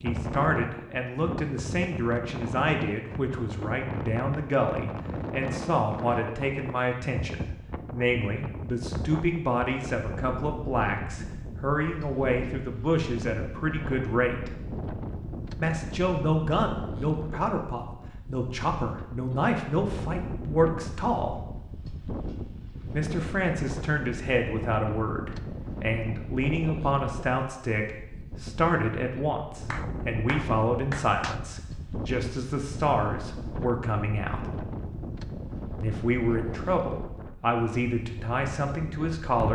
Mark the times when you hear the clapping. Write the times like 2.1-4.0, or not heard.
29.7-31.4.